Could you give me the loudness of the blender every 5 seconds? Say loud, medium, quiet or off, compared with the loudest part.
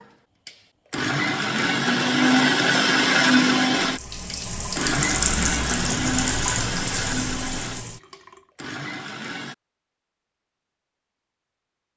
loud, medium, off.